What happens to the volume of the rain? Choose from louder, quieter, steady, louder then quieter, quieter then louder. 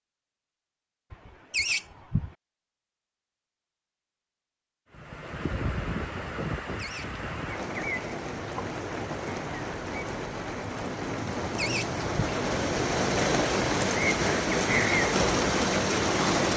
louder.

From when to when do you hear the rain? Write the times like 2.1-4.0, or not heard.
4.9-16.5.